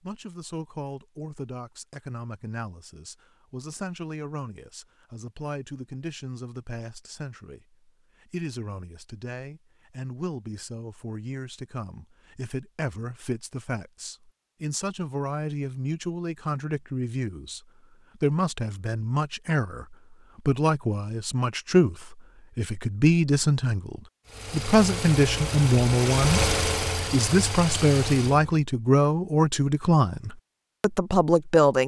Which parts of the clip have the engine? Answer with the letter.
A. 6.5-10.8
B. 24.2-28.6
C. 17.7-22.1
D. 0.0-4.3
B.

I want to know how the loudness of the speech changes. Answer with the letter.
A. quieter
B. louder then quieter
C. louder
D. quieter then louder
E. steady
C.